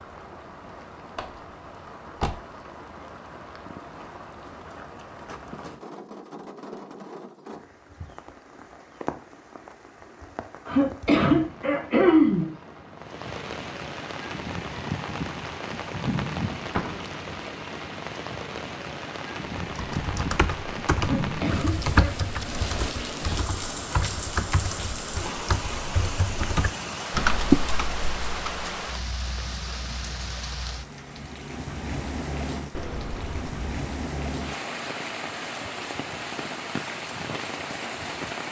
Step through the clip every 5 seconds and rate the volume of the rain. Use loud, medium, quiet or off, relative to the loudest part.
medium, medium, medium, loud, loud, loud, loud, loud.